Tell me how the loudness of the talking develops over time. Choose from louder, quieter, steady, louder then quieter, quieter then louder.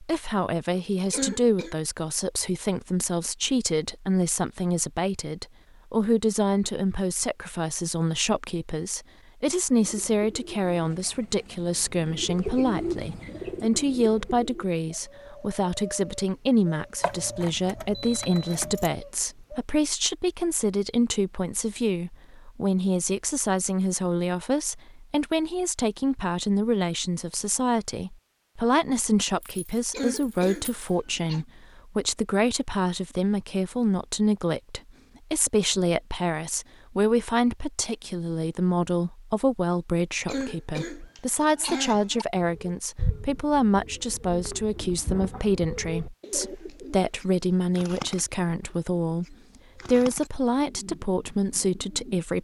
steady.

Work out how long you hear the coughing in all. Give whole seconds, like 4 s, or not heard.
4 s.